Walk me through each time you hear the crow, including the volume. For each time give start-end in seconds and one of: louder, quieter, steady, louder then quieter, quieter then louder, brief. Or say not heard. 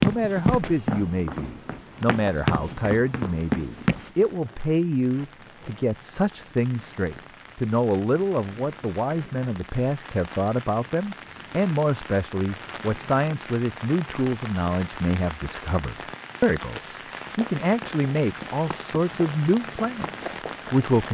not heard.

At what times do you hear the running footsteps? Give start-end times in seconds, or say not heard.
0.0-4.1, 17.2-21.1.